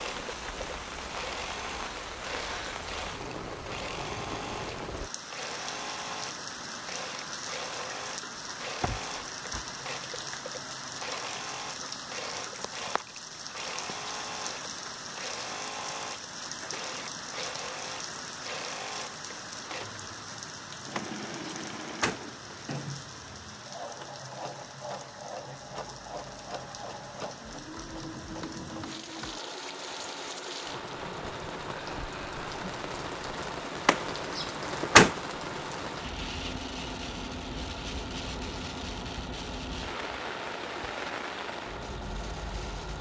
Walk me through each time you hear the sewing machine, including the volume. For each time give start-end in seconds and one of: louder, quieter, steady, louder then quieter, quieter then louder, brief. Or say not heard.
0.0-42.9 steady.